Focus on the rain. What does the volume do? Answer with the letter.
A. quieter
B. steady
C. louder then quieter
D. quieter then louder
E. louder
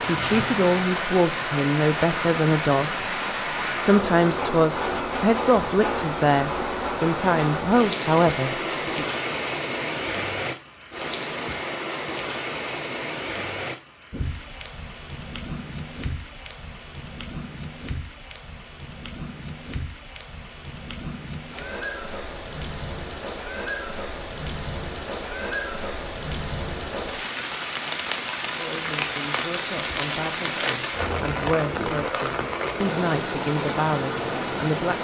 D.